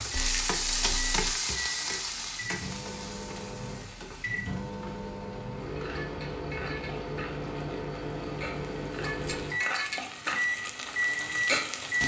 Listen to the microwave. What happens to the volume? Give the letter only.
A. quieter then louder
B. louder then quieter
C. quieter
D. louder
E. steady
D.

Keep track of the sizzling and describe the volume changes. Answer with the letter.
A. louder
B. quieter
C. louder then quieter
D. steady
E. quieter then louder
E.